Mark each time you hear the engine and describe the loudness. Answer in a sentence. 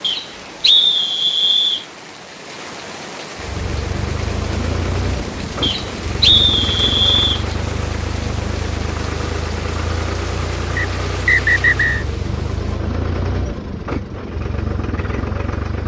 The engine can be heard from 3.4 to 15.8 s, at a steady volume.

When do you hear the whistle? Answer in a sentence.
The whistle can be heard from 0.0 to 1.9 s, from 5.6 to 7.5 s and from 10.8 to 12.1 s.